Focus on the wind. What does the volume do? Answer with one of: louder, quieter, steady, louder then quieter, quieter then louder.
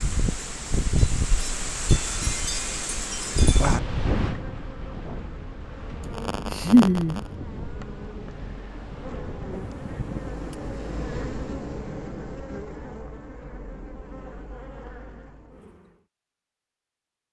quieter.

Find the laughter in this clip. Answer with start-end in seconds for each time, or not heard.
6.0-7.2.